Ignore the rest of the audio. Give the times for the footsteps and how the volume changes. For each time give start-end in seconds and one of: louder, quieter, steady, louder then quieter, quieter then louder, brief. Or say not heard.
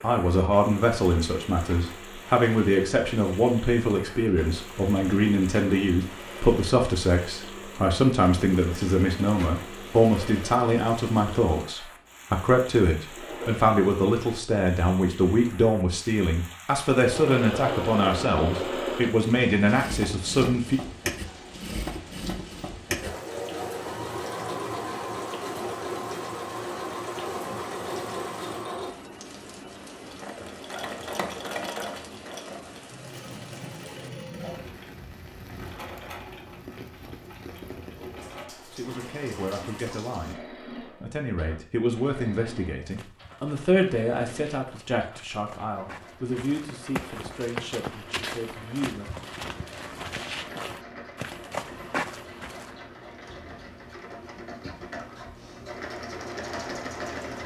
42.8-52.8 louder.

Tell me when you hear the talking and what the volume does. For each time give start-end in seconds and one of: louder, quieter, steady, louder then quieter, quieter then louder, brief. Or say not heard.
0.0-20.8 steady
38.7-49.1 louder then quieter.